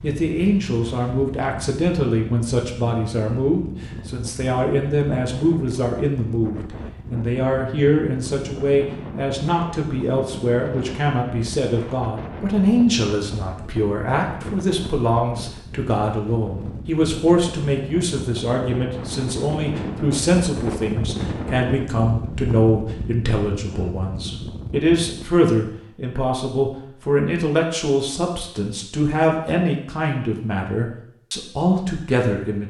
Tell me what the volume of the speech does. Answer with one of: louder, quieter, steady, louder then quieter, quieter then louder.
steady.